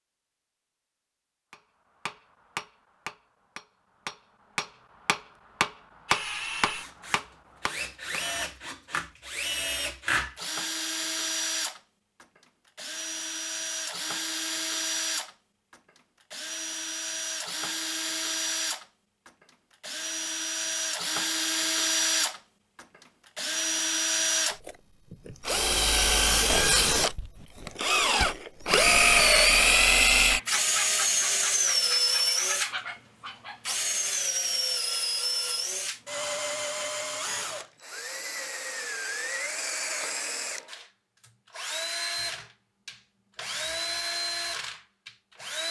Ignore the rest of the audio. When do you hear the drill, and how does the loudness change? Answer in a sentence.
You can hear the drill from 6.0 to 45.6 s, getting louder then quieter.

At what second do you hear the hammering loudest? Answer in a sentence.
The loudest moment of the hammering is at 6 seconds.